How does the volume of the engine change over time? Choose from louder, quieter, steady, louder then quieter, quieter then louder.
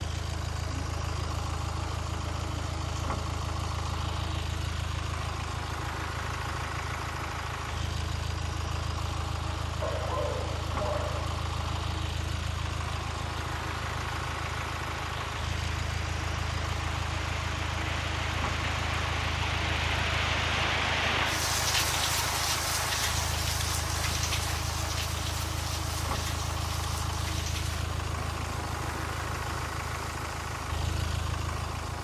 steady.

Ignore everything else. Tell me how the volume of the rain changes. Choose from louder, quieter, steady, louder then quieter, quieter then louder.
louder then quieter.